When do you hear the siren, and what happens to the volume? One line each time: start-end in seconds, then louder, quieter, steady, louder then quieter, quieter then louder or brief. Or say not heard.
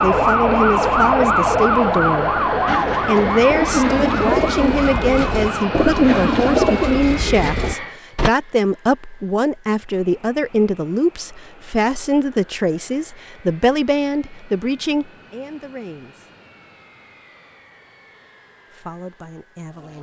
0.0-7.0 quieter.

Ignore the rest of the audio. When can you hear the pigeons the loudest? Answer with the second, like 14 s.
6 s.